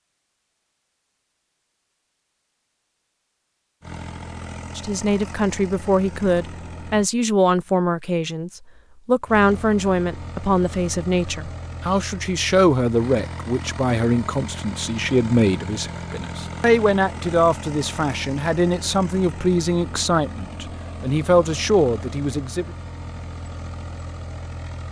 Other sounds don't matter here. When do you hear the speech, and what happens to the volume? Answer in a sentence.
The speech can be heard from 4.8 to 22.7 s, at a steady volume.